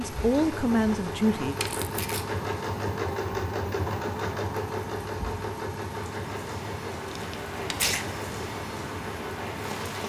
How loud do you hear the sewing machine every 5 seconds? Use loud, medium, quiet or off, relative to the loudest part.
loud, medium.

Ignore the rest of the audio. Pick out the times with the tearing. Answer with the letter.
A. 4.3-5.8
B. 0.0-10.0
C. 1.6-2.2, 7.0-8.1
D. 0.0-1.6
C.